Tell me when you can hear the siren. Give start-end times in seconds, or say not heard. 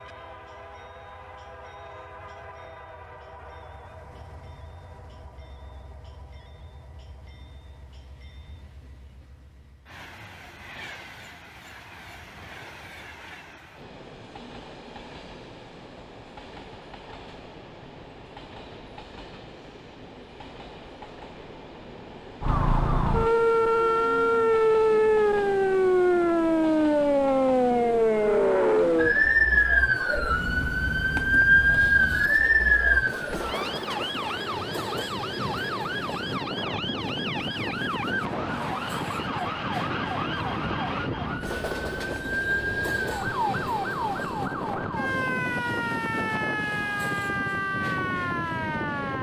22.4-49.1.